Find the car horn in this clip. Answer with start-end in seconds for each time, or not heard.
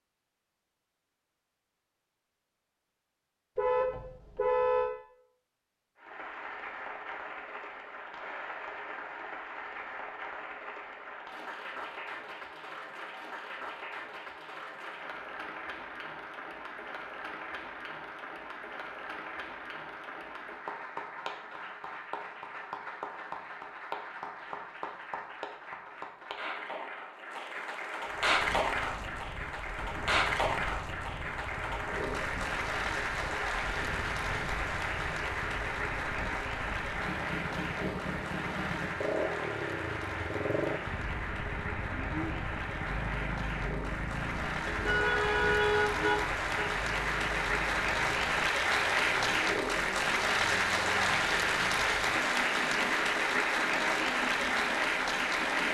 3.5-4.9, 44.6-46.5.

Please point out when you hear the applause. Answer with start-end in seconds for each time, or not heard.
6.0-55.6.